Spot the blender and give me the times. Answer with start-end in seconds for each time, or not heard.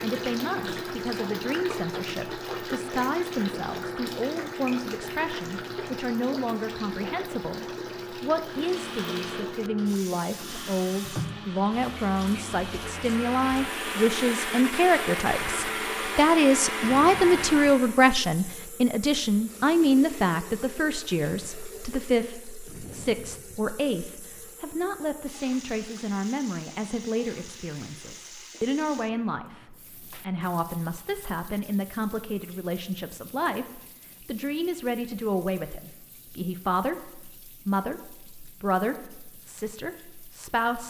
8.4-17.9.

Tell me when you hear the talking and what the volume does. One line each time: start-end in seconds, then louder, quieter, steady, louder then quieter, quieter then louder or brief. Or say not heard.
0.0-40.8 louder then quieter.